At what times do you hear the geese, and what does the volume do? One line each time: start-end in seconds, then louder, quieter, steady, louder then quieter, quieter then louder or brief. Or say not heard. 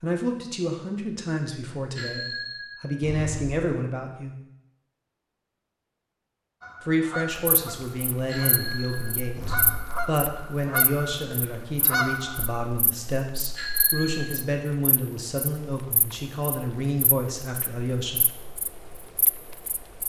6.6-12.7 quieter then louder.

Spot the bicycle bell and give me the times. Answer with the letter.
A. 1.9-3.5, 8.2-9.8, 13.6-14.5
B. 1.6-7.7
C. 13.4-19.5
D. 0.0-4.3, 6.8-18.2
A.